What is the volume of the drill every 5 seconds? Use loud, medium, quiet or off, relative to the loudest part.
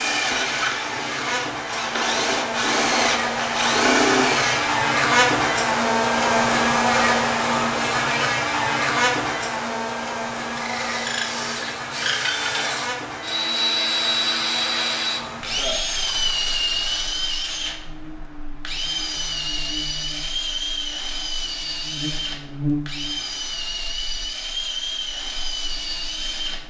loud, off, loud, loud, medium, medium.